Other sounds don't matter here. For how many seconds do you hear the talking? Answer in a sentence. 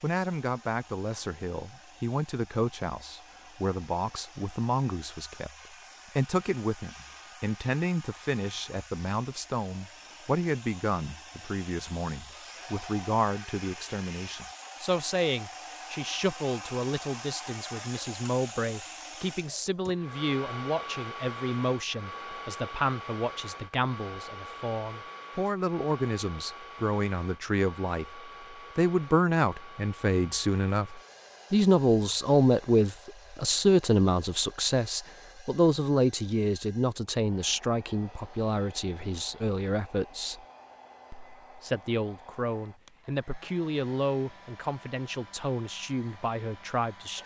The talking can be heard for 46 seconds in total.